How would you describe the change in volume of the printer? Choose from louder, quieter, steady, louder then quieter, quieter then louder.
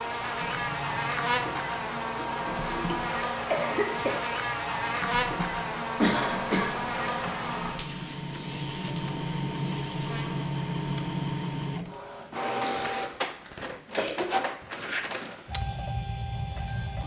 louder.